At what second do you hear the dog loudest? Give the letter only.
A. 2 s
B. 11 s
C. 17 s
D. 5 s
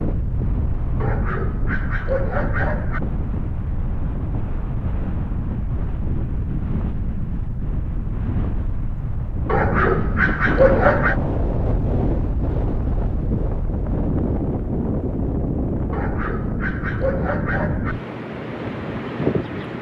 B.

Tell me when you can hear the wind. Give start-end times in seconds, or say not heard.
0.0-19.7.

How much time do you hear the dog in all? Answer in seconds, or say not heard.
6 s.